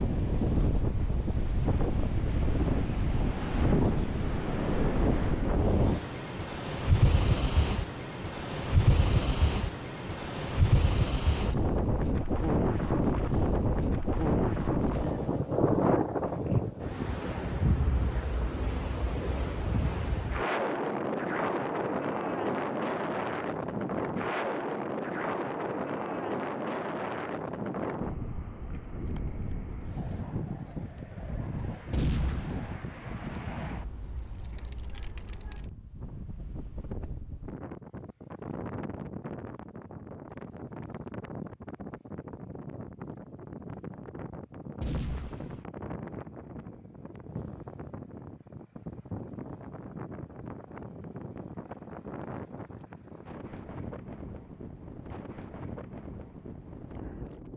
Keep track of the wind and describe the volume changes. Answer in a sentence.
The loudness of the wind goes down.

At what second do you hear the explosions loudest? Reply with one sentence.
The volume of the explosions peaks at 32 seconds.